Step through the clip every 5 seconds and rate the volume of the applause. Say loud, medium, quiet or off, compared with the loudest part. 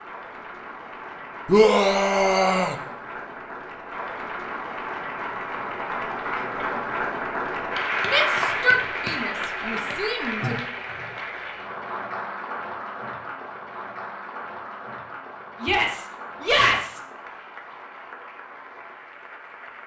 medium, loud, medium, quiet.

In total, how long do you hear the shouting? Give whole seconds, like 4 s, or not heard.
5 s.